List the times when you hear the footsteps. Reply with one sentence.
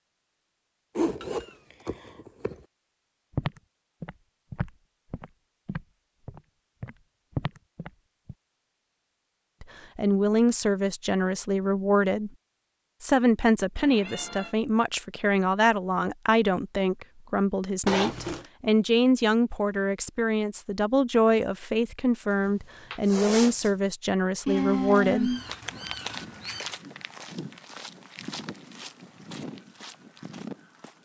The footsteps can be heard from 3.3 to 8.3 s and from 24.6 to 30.9 s.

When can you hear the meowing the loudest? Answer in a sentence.
The volume of the meowing peaks at 25 seconds.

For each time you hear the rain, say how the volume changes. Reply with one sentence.
The rain can't be heard in this clip.